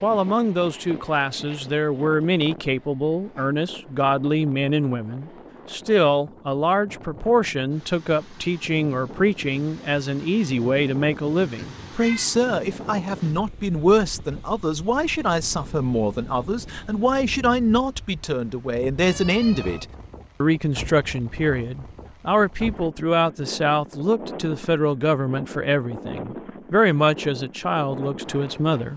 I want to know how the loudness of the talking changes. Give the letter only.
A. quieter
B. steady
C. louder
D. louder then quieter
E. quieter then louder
B.